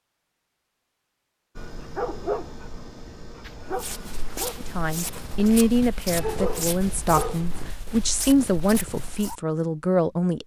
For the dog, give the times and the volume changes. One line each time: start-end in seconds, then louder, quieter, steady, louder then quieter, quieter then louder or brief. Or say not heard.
1.6-7.7 quieter then louder.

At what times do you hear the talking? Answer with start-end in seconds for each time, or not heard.
4.8-10.4.